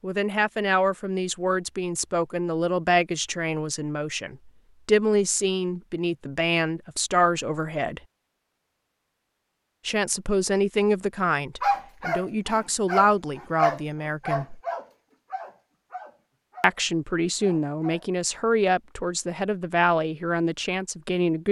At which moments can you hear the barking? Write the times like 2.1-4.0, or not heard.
11.6-16.8, 17.4-18.1.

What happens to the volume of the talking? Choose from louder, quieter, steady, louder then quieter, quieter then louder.
steady.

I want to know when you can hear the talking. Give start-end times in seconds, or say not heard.
0.0-8.0, 9.8-14.6, 16.6-21.4.